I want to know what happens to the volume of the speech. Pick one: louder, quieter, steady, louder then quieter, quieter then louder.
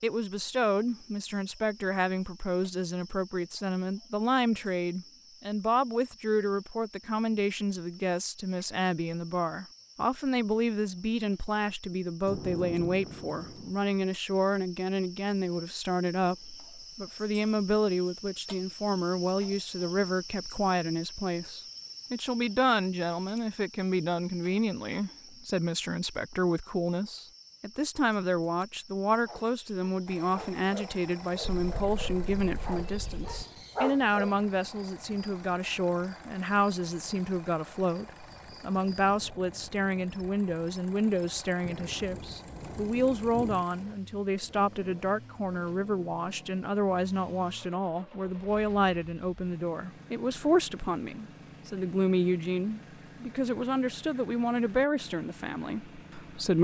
steady.